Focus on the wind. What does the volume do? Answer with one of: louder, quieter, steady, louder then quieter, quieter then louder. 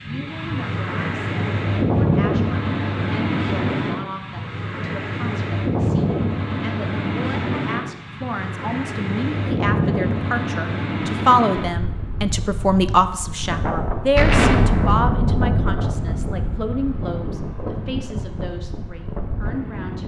quieter.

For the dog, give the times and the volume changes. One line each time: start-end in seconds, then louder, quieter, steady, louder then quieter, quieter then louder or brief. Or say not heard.
not heard.